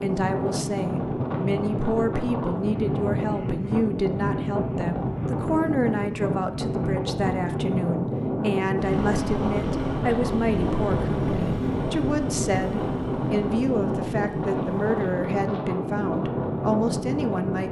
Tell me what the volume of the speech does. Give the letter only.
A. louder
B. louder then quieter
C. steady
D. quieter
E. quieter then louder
C.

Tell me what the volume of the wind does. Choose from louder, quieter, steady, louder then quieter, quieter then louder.
steady.